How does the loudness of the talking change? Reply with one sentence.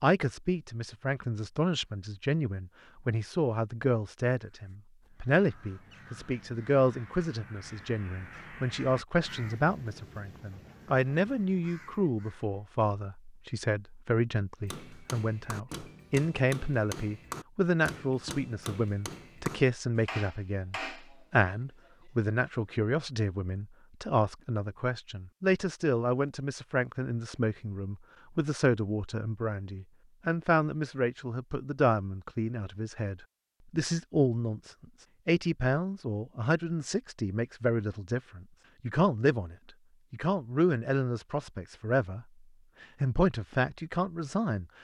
The loudness of the talking stays about the same.